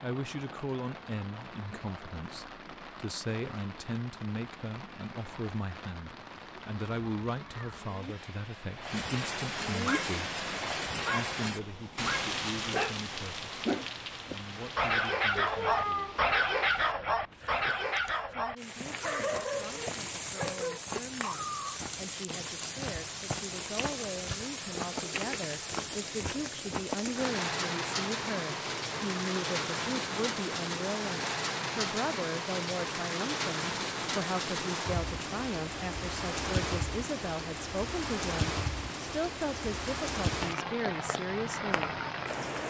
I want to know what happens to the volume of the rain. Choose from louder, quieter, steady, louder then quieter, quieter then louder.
louder.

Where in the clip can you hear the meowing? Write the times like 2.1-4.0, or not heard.
15.3-16.3.